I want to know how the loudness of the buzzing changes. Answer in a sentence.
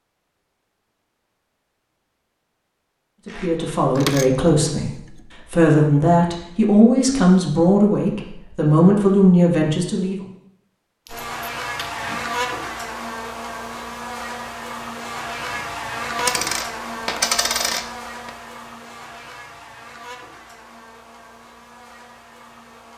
The volume of the buzzing goes down.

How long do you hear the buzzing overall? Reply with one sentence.
You can hear the buzzing for 12 seconds altogether.